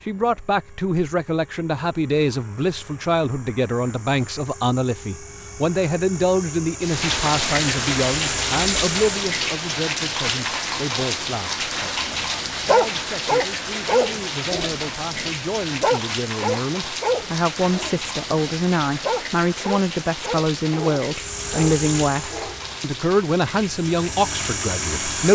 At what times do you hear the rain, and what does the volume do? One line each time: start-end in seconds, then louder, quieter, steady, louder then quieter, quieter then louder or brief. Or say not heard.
6.8-25.3 quieter.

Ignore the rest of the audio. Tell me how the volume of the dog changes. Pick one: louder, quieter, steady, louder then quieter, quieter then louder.
quieter.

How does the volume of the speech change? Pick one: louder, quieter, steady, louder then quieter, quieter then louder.
quieter then louder.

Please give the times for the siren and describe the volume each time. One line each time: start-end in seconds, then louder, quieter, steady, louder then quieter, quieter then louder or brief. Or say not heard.
not heard.